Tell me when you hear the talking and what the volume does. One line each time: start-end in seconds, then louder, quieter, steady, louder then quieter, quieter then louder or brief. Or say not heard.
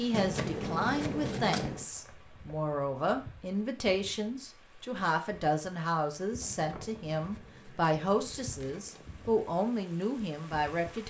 0.0-11.0 steady.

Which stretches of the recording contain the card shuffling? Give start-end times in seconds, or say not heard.
0.1-1.9, 6.5-9.2.